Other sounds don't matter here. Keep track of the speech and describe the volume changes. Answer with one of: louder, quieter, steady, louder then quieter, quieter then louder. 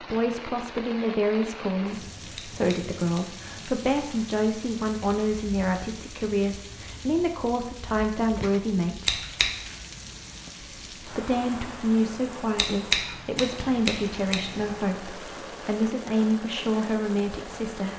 steady.